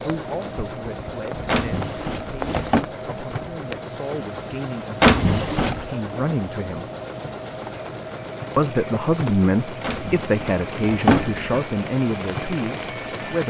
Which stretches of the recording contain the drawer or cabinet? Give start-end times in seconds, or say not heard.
1.5-2.9, 5.0-5.9, 9.8-11.4.